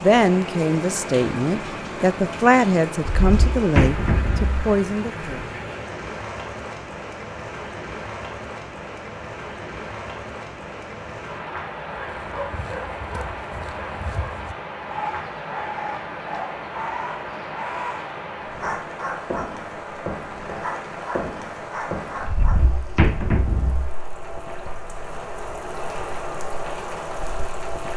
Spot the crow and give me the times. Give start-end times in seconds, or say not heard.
not heard.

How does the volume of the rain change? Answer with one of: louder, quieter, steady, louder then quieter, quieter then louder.
steady.